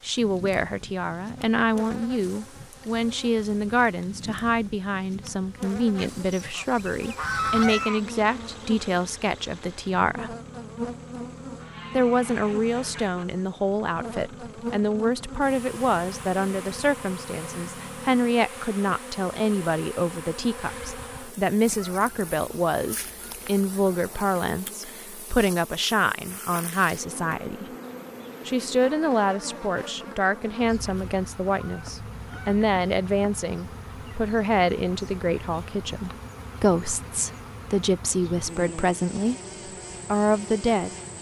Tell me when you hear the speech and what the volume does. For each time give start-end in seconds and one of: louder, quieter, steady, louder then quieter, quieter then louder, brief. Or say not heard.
0.0-10.3 steady
11.9-27.6 steady
28.4-39.4 steady
40.0-41.0 brief.